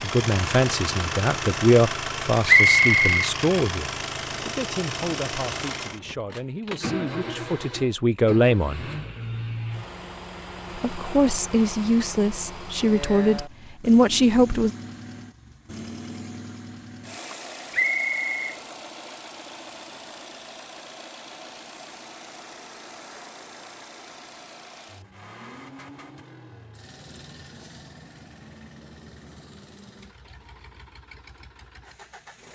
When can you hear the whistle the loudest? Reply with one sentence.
The loudest moment of the whistle is at 3 seconds.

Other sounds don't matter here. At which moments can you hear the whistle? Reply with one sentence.
You can hear the whistle from 2.5 to 3.3 s and from 17.7 to 18.6 s.